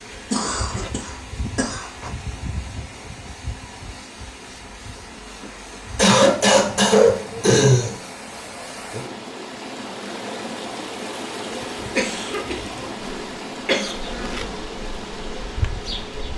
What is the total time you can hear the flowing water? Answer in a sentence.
The flowing water can be heard for 16 seconds in total.